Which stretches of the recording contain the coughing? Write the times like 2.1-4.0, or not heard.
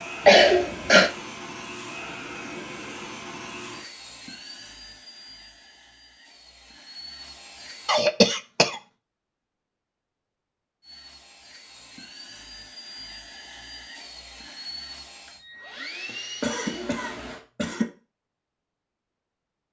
0.2-1.1, 7.8-8.8, 16.1-17.9.